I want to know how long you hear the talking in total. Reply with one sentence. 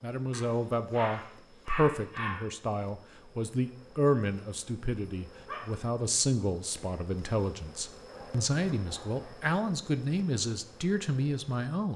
The talking can be heard for 12 seconds in total.